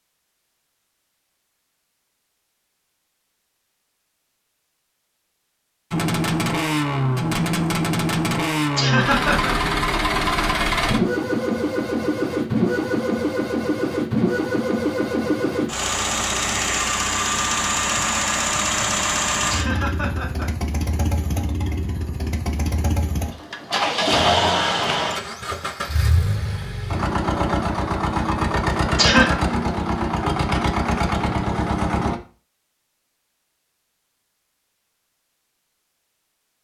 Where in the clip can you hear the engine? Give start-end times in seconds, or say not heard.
5.9-32.2.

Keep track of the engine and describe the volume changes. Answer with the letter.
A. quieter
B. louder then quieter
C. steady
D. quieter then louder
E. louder
C.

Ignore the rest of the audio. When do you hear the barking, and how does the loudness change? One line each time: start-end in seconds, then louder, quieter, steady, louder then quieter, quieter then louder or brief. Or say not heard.
not heard.